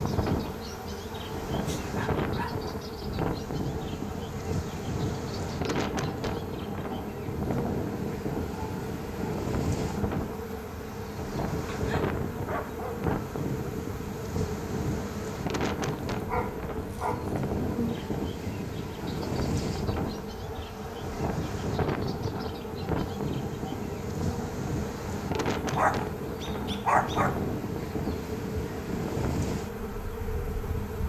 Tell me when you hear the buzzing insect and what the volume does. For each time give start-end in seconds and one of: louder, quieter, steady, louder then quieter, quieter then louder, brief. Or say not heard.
0.0-31.0 steady.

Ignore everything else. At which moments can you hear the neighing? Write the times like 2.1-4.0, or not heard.
not heard.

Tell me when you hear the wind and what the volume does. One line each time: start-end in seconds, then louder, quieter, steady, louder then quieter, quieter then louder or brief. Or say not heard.
0.0-31.0 steady.